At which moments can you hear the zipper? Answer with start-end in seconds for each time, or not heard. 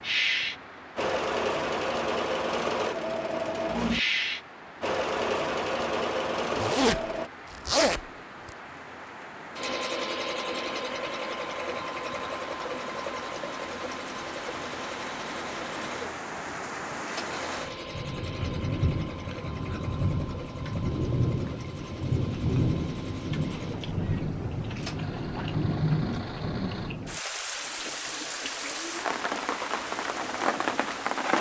6.5-8.5.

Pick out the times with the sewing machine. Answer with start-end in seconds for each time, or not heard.
0.0-7.3, 9.6-31.2.